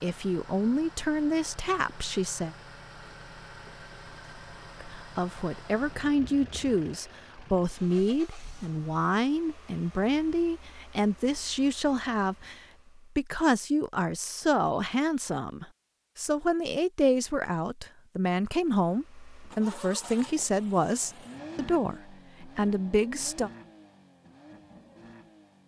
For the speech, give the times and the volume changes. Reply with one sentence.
The speech can be heard briefly from 0.0 to 2.5 s; and from 4.8 to 23.5 s, at a steady volume.